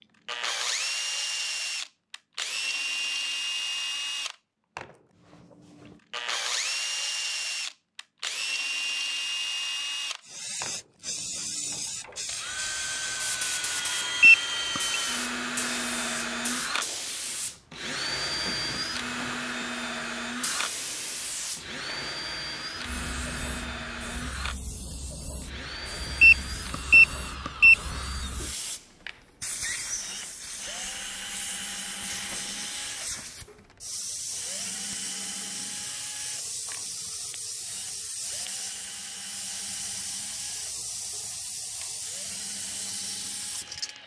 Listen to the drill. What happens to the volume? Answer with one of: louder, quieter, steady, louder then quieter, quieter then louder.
quieter.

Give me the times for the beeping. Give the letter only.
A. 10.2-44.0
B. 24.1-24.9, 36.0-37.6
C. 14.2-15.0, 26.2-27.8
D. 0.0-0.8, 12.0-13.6
C.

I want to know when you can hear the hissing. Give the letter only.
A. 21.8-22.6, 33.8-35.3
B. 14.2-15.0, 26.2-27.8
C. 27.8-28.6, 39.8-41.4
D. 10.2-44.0
D.